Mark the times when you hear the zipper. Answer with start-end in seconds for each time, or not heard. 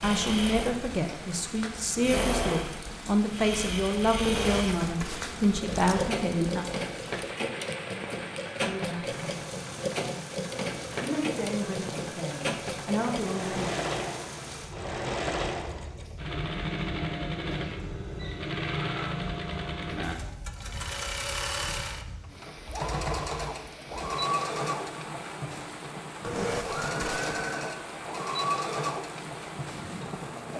4.2-6.2, 26.2-27.4.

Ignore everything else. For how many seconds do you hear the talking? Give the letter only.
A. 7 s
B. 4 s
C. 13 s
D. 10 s
D.